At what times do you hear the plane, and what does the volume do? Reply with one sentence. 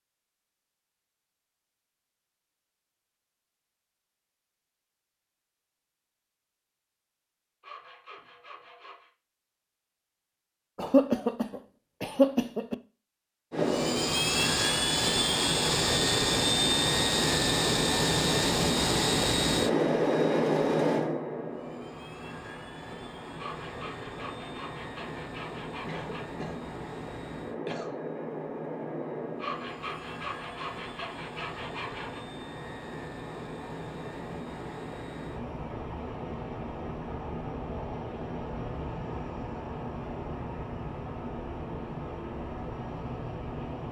The plane can be heard from 13.5 to 43.8 s, getting quieter.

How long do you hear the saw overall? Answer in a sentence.
The saw can be heard for 7 seconds in total.